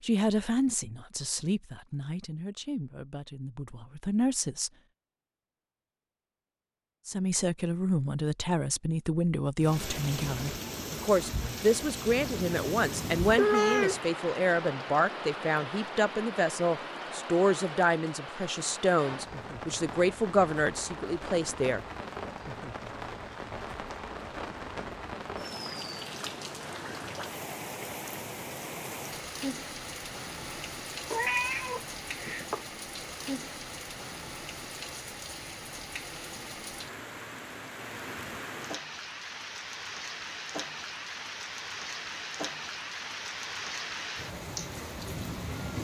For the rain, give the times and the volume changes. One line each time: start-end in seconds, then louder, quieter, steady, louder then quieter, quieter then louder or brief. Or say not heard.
9.6-45.8 steady.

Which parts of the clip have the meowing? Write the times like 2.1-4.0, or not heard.
12.2-14.0, 31.1-32.6.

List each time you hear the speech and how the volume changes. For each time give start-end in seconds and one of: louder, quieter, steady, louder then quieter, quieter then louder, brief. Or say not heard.
0.0-4.7 quieter then louder
7.0-21.9 steady.